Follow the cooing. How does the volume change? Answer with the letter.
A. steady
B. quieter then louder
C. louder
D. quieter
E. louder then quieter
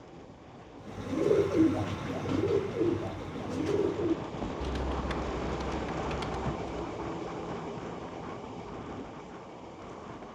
D.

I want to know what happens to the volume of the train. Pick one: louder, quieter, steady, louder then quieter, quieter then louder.
louder then quieter.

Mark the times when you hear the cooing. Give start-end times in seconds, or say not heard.
0.8-6.7.